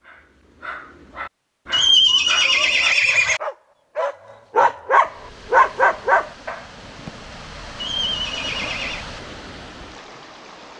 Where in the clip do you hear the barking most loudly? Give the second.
6 s.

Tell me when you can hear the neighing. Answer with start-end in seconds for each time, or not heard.
1.7-3.4, 7.8-9.1.